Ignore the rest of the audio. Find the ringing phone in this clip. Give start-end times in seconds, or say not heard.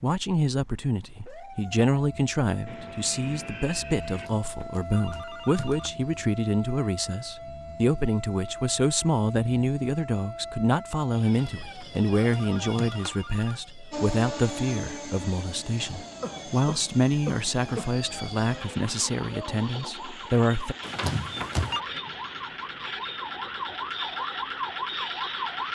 4.0-5.9, 11.2-13.6, 20.8-21.8.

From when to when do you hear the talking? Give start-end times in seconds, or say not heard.
0.0-20.8.